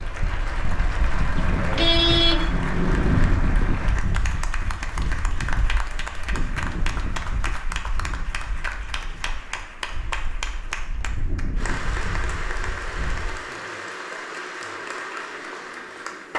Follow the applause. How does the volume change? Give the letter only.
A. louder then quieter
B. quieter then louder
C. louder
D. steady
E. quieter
D.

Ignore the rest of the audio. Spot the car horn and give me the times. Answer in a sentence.
The car horn can be heard from 1.4 to 3.3 s.